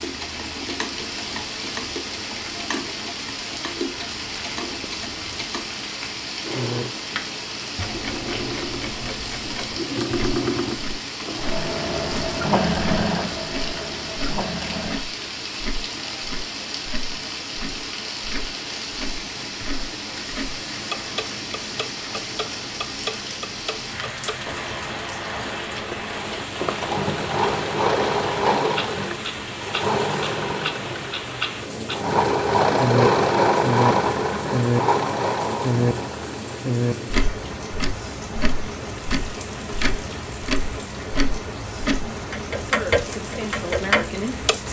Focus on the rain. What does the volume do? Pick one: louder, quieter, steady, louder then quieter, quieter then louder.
steady.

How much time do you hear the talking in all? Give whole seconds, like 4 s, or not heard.
2 s.